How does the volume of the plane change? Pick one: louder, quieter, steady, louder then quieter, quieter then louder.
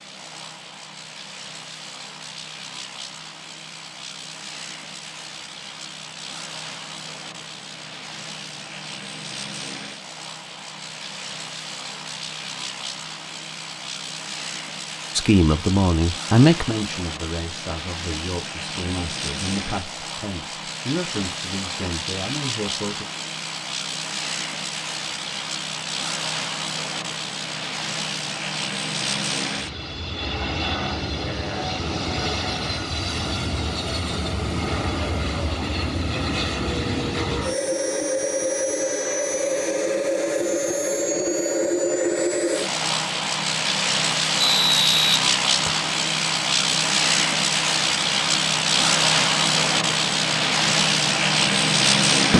louder.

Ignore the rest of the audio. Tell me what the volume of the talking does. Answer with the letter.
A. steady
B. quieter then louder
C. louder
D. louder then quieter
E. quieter
E.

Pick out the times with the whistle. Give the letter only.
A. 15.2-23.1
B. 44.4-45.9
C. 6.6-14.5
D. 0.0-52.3
B.